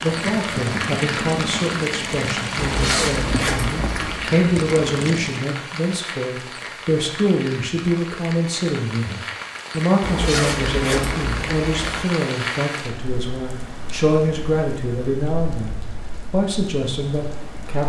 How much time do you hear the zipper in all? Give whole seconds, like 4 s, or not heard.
4 s.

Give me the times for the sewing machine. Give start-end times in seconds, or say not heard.
0.0-5.5.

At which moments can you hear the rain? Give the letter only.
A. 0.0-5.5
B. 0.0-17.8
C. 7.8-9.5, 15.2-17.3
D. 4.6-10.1
B.